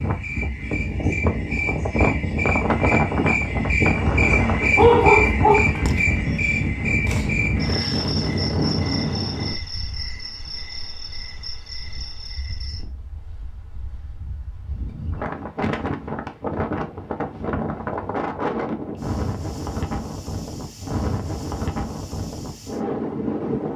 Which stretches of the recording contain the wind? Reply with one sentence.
The wind can be heard from 0.0 to 23.7 s.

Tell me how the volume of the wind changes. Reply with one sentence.
The loudness of the wind goes down, then up.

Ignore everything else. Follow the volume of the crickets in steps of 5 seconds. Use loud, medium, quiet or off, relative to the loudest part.
loud, loud, medium, off, off.